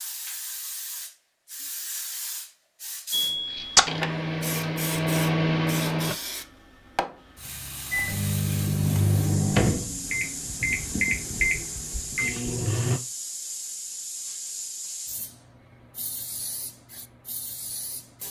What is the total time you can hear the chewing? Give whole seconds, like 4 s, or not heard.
not heard.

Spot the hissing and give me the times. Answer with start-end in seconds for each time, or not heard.
0.0-18.2.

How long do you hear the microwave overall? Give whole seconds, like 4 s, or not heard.
8 s.